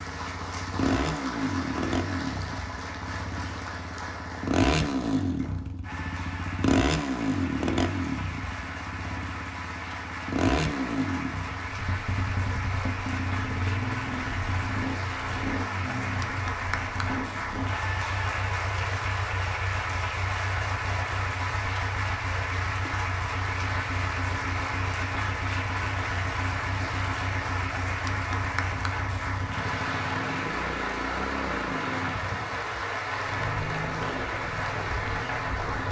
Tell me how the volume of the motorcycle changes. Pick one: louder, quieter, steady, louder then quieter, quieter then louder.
quieter.